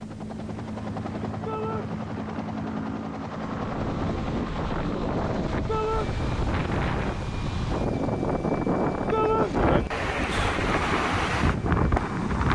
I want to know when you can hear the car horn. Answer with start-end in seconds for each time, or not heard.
not heard.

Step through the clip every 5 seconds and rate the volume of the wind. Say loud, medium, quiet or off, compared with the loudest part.
medium, loud, loud.